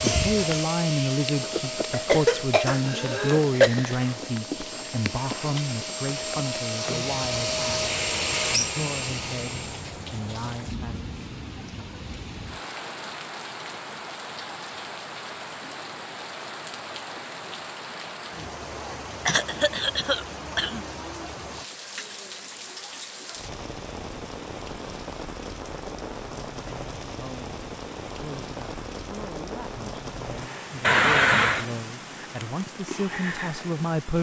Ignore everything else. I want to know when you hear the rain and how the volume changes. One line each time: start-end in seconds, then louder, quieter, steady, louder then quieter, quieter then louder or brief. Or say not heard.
0.0-34.1 steady.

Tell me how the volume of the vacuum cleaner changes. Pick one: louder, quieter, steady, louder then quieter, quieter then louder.
quieter then louder.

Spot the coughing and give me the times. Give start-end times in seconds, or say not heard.
1.9-3.7, 19.2-20.9, 30.8-31.6.